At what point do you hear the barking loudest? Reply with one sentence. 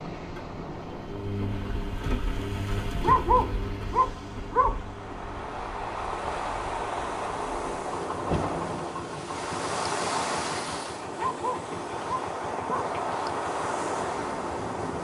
The volume of the barking peaks at 3 seconds.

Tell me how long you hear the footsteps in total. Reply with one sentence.
The footsteps can't be heard in this clip.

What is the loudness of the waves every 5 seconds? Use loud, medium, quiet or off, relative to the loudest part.
medium, loud, loud.